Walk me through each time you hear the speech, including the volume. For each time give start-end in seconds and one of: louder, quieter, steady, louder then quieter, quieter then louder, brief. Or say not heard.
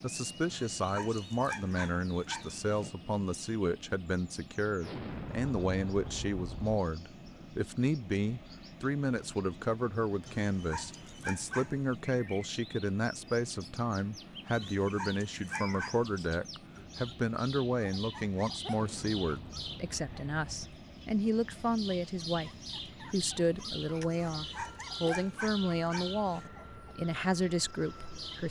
0.0-28.4 steady.